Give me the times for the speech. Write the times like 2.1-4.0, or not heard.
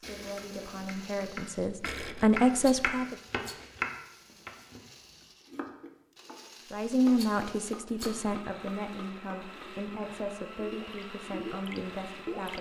0.0-3.1, 6.7-12.5.